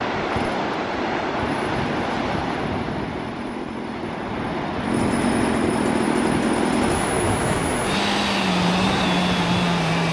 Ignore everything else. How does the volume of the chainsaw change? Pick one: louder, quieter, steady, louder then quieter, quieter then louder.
louder.